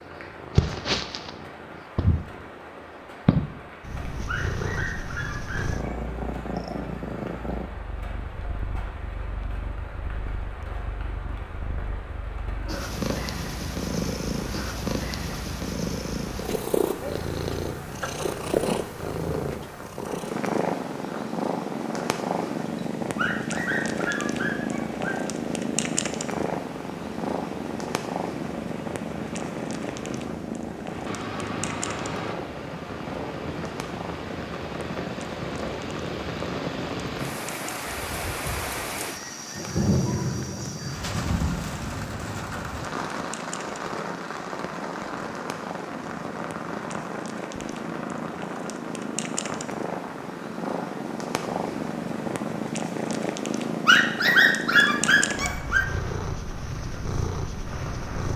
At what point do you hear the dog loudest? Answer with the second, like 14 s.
54 s.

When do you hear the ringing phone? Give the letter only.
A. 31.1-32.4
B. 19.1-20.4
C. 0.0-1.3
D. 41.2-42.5
A.